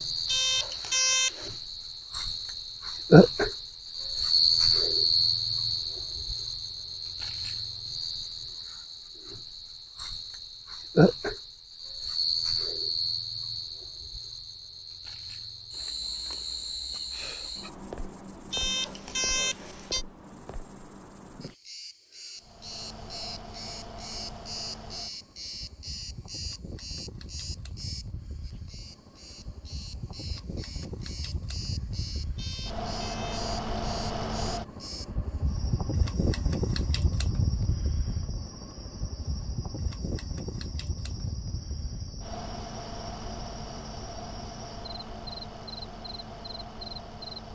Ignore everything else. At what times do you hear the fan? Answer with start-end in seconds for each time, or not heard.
22.4-47.5.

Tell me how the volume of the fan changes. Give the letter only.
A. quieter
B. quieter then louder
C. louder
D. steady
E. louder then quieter
E.